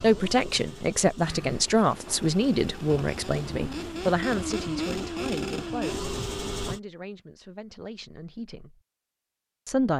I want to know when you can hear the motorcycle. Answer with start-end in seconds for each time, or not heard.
0.0-6.8.